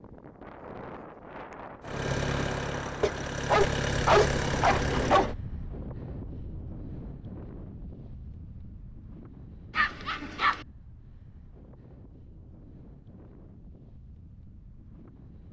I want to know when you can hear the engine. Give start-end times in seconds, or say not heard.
1.8-5.3.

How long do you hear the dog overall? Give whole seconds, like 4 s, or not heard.
3 s.